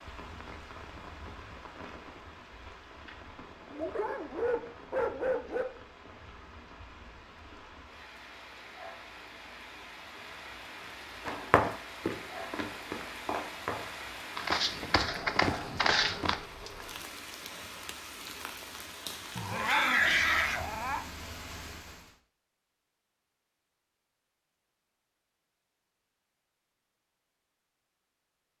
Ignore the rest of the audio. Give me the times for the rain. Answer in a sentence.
The rain can be heard from 0.0 to 22.2 s.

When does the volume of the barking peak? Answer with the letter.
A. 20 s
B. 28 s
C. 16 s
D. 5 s
A.